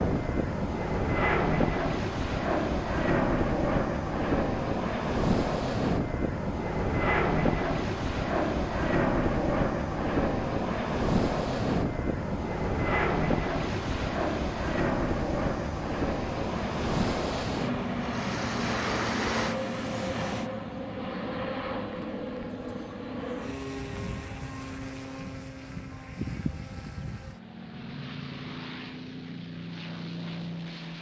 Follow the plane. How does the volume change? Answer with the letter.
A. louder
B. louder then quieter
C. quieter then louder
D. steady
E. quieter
E.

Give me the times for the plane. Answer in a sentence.
You can hear the plane from 0.0 to 30.9 s.